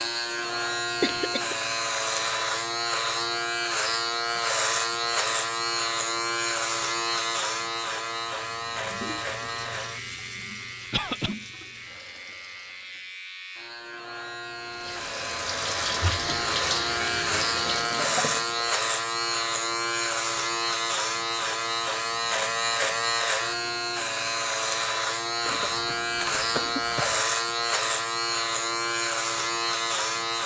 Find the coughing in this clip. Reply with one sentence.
The coughing can be heard from 1.0 to 1.6 s, from 10.9 to 11.3 s and from 25.4 to 27.2 s.